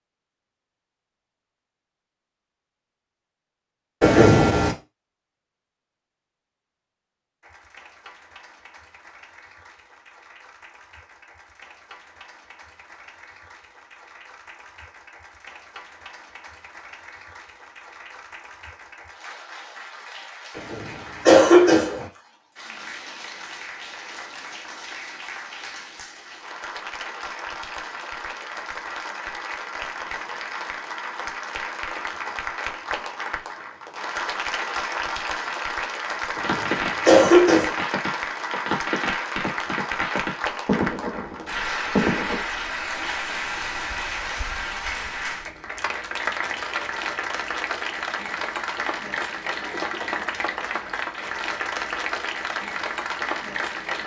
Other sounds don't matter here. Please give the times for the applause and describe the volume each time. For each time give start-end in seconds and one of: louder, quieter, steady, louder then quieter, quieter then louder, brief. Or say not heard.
7.4-54.0 louder.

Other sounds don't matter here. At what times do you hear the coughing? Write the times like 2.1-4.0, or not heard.
4.0-4.8, 20.6-22.1, 36.4-37.7.